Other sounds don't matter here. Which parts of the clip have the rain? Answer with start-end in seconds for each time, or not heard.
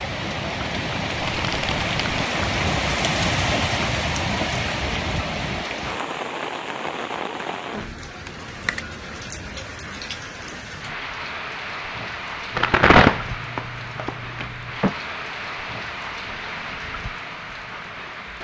0.0-18.3.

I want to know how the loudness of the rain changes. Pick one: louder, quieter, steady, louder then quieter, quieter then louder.
quieter.